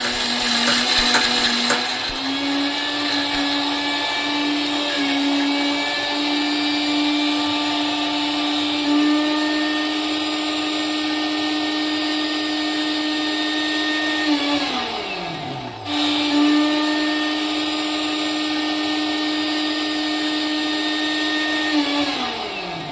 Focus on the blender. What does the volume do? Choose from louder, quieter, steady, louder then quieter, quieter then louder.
steady.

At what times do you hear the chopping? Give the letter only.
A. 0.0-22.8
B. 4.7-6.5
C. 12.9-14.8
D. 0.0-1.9
D.